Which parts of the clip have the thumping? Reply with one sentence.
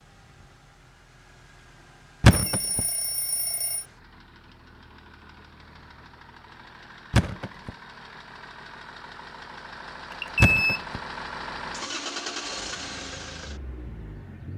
You can hear the thumping from 2.2 to 2.8 s, from 7.1 to 7.7 s and from 10.4 to 11.0 s.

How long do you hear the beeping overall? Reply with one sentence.
You can hear the beeping for 2 seconds altogether.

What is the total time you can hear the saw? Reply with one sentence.
The saw can't be heard in this clip.